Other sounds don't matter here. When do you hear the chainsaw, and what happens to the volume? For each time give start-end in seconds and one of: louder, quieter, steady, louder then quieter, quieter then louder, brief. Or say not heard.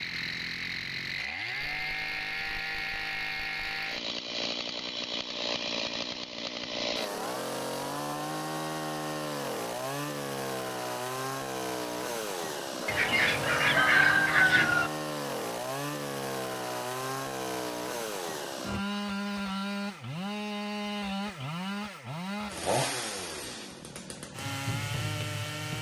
0.0-25.7 steady.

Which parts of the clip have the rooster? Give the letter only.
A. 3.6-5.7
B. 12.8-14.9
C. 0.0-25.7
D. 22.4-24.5
B.